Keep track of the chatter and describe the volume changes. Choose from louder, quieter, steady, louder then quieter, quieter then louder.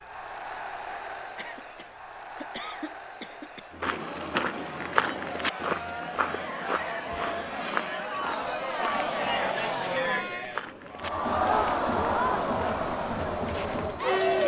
louder.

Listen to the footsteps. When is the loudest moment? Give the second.
5 s.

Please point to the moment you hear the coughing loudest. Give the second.
3 s.